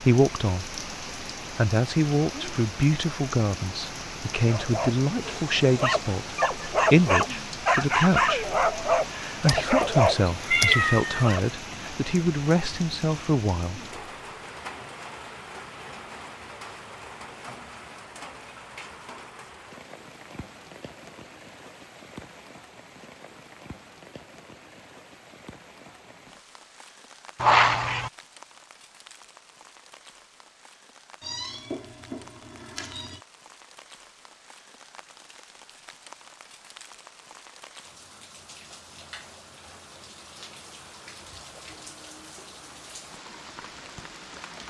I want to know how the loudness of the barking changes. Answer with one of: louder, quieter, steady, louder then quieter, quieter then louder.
louder.